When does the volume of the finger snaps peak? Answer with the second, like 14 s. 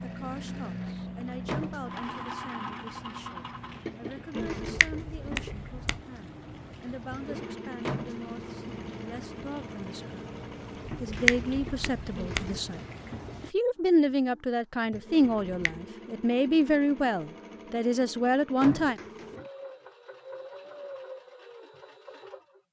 11 s.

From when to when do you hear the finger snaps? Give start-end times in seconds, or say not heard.
4.4-6.0, 11.0-12.6, 15.2-15.8.